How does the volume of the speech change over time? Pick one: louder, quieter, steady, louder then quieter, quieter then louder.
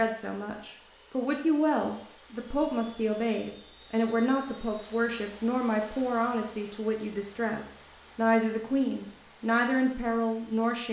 steady.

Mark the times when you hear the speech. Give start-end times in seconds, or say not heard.
0.0-10.8.